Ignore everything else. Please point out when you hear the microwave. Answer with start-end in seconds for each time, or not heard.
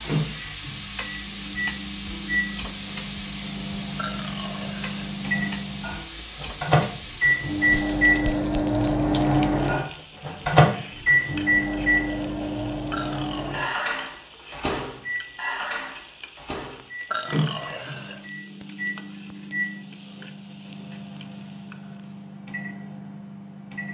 0.0-23.9.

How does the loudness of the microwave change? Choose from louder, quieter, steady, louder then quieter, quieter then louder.
louder then quieter.